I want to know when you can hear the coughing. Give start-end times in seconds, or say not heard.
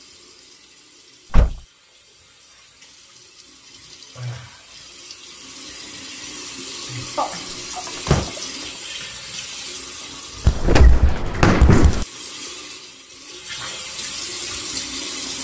7.2-8.8.